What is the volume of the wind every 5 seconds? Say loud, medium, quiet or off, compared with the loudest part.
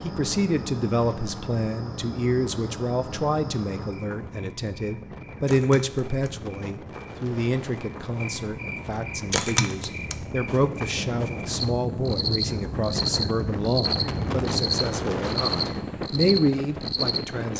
medium, medium, loud, loud.